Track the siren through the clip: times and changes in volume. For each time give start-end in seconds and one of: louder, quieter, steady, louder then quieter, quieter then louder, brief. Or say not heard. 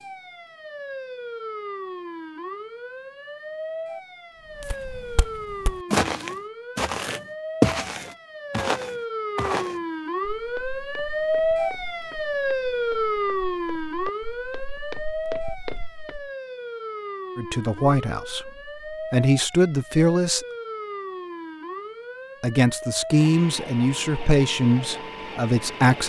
0.0-26.0 louder then quieter.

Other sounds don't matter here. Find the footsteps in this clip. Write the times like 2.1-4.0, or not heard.
4.5-16.3.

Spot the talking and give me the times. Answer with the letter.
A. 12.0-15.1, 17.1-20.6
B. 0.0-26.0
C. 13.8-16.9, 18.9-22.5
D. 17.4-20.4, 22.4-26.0
D.